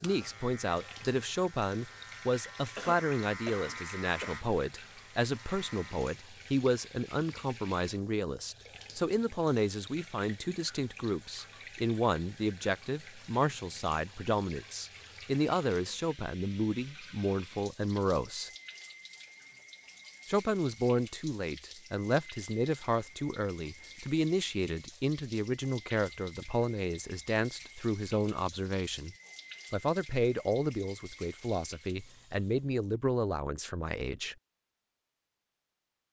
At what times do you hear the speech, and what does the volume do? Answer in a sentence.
The speech can be heard from 0.0 to 18.5 s, at a steady volume; and from 20.2 to 34.4 s, at a steady volume.